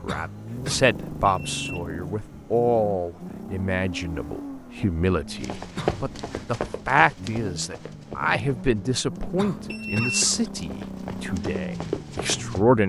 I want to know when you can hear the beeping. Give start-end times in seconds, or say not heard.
1.2-1.9, 9.7-10.3.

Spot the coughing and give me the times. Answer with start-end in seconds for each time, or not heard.
0.1-0.8, 5.8-6.4, 9.3-10.5.